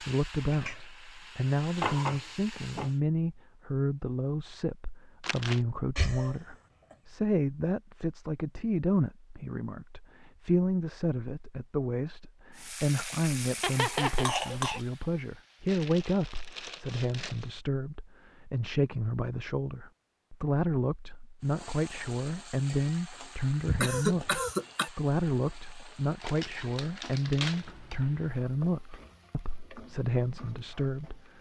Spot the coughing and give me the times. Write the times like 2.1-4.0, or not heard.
6.0-7.0, 13.6-14.8, 23.6-24.9.